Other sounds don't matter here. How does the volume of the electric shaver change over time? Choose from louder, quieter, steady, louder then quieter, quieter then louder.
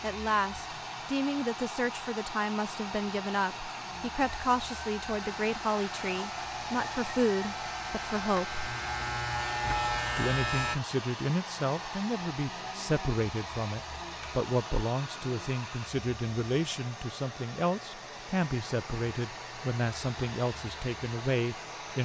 louder.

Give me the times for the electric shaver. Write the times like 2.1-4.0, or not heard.
5.2-10.8.